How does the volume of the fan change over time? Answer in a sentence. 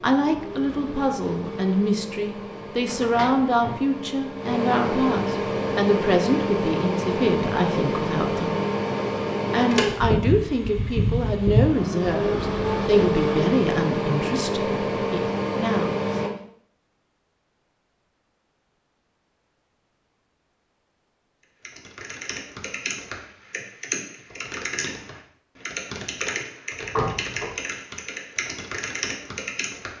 The loudness of the fan goes up.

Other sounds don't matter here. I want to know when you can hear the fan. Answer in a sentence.
The fan can be heard from 0.0 to 16.3 s.